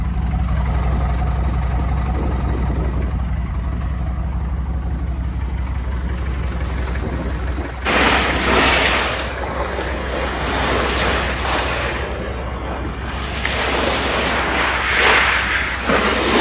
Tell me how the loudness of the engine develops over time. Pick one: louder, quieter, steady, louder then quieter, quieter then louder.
quieter.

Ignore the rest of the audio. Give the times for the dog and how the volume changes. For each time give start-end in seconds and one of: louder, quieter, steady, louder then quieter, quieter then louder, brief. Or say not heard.
not heard.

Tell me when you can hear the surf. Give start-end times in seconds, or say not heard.
7.8-16.3.